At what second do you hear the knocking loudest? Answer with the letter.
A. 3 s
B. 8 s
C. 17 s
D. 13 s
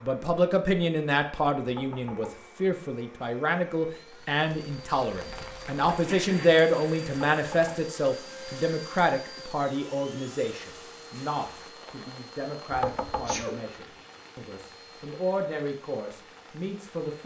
D.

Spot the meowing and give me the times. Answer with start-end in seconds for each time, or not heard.
not heard.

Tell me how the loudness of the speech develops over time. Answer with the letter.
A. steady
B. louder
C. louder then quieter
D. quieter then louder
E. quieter
E.